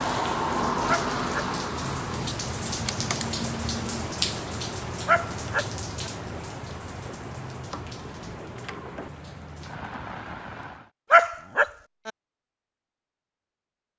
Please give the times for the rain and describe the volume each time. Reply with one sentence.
You can hear the rain from 0.0 to 10.9 s, getting quieter.